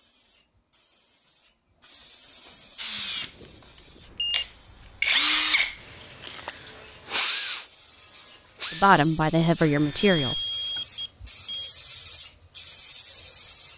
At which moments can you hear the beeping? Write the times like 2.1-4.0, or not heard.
3.0-4.5, 10.0-11.8.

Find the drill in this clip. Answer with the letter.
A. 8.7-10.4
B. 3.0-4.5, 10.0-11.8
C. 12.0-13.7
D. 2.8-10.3
D.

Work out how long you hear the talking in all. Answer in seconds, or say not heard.
2 s.